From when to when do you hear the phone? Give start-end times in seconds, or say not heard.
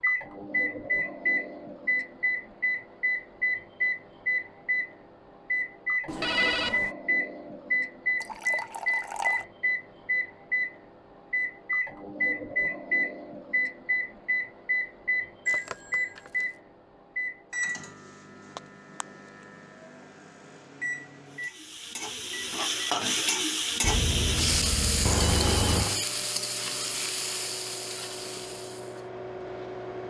6.0-7.0, 15.4-16.4, 23.8-25.9.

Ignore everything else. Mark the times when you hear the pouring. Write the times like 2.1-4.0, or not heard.
8.2-9.4, 25.1-26.1.